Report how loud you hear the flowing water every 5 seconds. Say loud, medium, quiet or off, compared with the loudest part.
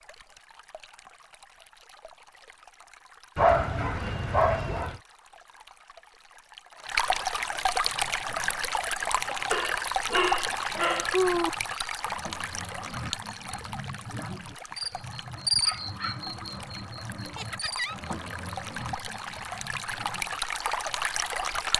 quiet, loud, loud, medium, loud.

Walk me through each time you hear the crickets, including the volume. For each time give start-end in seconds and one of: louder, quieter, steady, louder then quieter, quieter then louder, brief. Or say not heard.
7.7-21.6 louder then quieter.